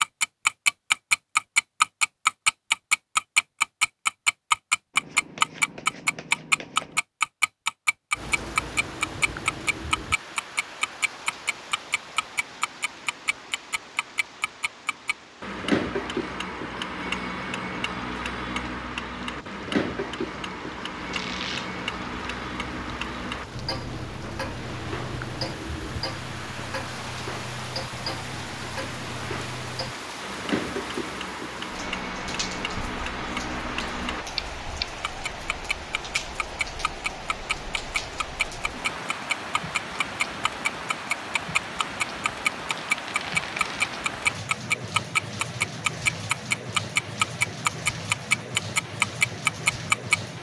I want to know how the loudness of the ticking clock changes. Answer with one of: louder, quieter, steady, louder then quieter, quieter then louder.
quieter then louder.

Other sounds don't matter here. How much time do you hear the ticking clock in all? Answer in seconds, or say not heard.
50 s.